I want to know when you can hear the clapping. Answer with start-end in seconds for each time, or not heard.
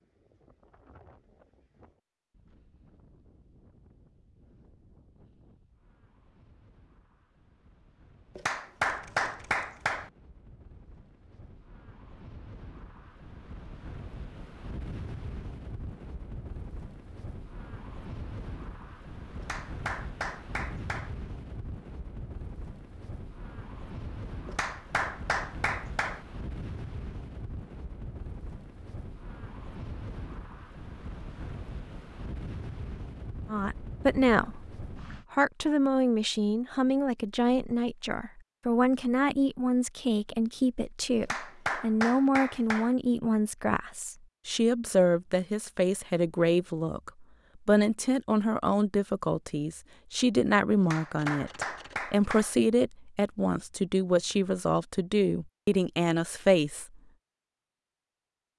8.3-10.1, 19.4-21.1, 24.4-26.2, 41.2-43.0, 50.8-52.5.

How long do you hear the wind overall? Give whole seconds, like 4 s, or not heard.
35 s.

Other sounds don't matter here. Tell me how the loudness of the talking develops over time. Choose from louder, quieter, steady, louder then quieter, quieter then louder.
steady.